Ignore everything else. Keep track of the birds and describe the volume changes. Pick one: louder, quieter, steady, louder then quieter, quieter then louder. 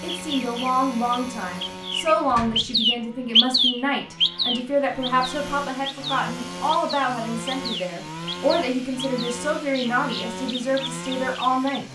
louder then quieter.